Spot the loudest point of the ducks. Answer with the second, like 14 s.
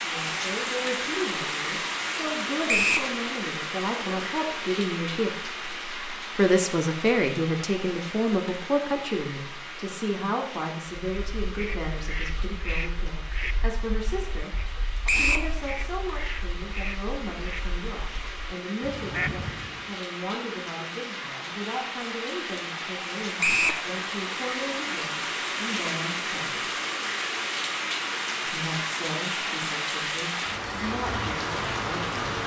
19 s.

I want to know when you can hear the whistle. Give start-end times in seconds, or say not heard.
2.6-3.1, 15.1-15.5, 23.4-23.8.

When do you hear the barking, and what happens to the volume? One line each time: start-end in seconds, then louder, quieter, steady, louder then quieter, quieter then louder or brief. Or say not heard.
not heard.